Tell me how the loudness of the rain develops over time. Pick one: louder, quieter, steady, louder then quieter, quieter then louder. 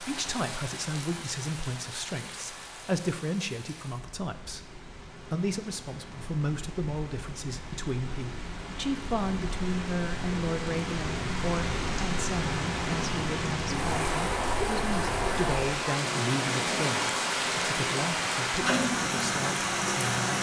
louder.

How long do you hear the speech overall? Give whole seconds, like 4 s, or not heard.
20 s.